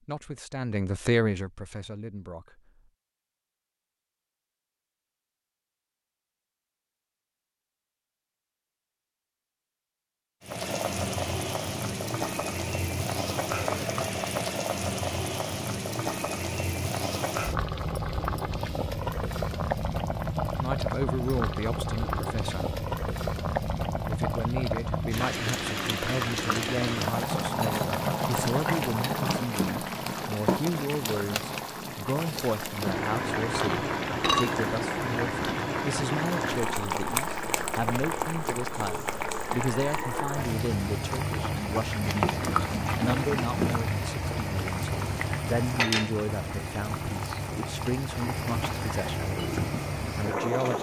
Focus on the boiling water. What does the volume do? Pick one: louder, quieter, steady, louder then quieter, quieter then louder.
steady.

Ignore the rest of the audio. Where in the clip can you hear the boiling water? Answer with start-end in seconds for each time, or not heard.
10.4-50.7.